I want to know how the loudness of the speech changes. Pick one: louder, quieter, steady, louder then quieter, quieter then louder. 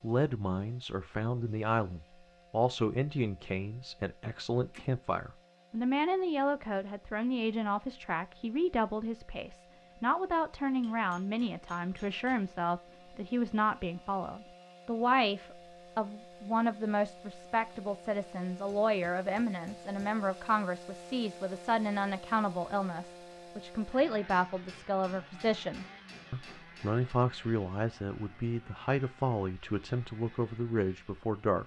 steady.